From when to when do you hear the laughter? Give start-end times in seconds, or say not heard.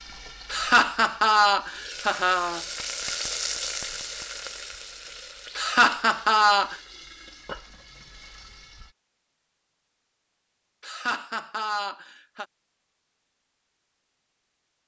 0.5-2.6, 5.5-6.8, 10.8-12.4.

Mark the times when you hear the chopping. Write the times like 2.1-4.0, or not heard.
not heard.